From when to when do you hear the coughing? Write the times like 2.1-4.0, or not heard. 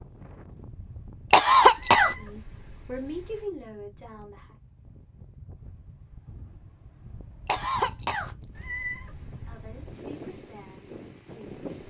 1.3-2.1, 7.5-8.8.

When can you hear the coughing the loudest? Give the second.
2 s.